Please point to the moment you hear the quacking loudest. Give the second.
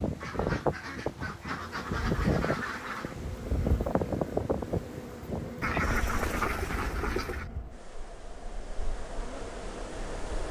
6 s.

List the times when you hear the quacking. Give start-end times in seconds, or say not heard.
0.2-3.1, 5.6-7.5.